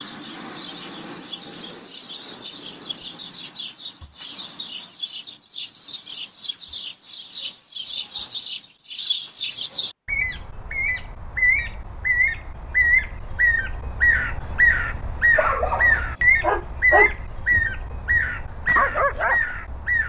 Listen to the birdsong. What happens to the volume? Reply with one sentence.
The volume of the birdsong goes up.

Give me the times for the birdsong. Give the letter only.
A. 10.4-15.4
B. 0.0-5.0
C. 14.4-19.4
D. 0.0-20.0
D.